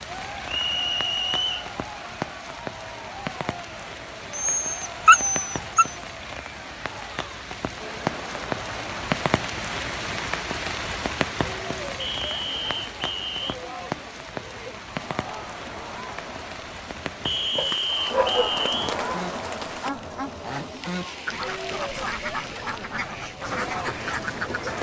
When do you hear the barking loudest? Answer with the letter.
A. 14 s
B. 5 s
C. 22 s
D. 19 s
B.